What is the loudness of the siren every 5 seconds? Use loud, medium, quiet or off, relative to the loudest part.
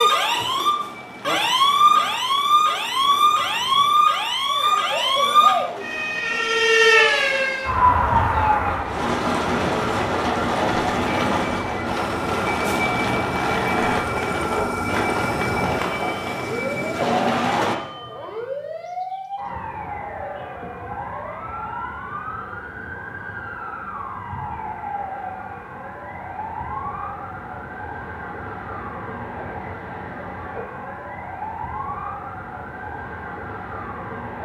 loud, loud, quiet, quiet, quiet, quiet, quiet.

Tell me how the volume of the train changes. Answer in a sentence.
The volume of the train goes up.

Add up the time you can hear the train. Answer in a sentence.
You can hear the train for 18 seconds altogether.